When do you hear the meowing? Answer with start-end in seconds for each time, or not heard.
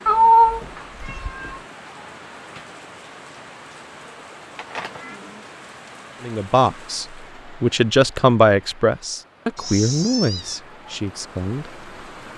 0.1-1.6, 4.5-5.2, 9.6-10.6.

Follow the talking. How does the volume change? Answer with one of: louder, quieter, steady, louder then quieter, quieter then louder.
louder then quieter.